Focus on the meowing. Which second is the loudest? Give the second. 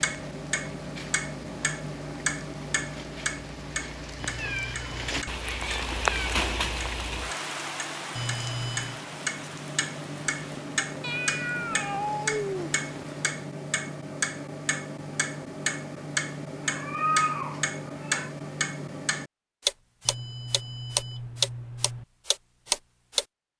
17 s.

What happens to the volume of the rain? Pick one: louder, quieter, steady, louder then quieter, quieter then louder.
louder then quieter.